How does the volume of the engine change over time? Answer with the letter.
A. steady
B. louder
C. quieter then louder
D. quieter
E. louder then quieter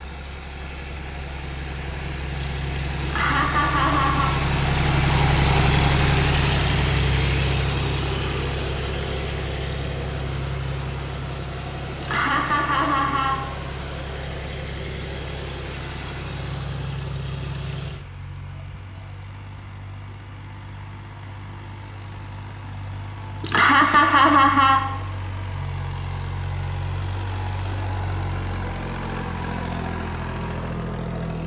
C.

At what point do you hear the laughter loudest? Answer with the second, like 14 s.
24 s.